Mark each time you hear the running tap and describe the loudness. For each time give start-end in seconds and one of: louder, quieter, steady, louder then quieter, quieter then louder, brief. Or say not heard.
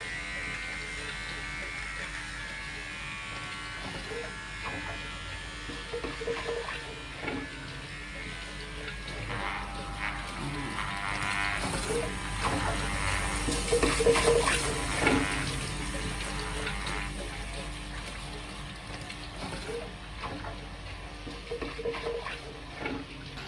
0.0-23.4 louder then quieter.